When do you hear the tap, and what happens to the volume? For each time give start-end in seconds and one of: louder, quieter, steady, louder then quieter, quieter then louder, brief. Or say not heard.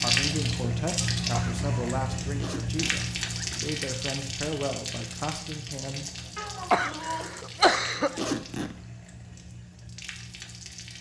0.0-10.9 quieter.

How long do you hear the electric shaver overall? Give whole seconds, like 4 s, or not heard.
not heard.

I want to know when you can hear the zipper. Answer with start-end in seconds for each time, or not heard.
2.4-3.8, 8.2-8.8.